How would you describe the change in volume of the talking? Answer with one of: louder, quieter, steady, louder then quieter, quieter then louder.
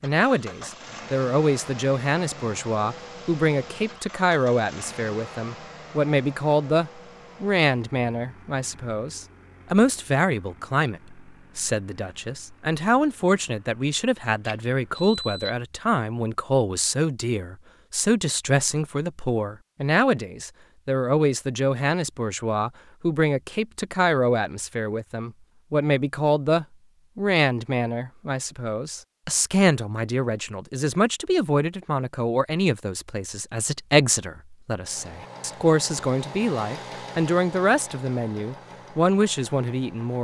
steady.